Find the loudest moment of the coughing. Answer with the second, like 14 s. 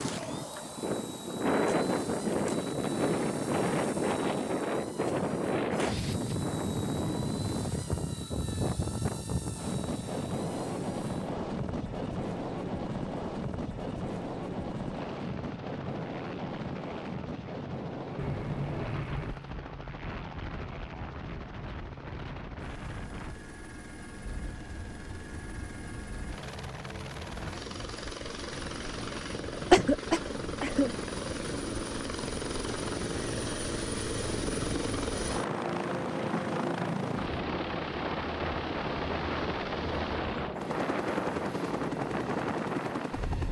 30 s.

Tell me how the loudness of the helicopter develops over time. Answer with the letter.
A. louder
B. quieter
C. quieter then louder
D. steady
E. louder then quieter
A.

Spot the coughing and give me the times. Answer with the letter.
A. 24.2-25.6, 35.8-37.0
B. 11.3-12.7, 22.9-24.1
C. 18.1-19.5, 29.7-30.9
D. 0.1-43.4
C.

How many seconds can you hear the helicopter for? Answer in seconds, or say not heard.
43 s.